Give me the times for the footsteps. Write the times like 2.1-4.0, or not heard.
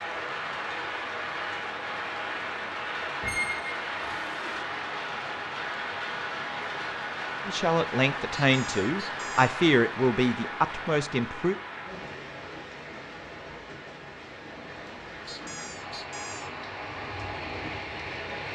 not heard.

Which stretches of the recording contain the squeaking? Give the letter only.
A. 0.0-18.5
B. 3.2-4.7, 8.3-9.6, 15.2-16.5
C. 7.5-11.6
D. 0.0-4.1
B.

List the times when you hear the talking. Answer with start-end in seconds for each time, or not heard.
7.5-11.6.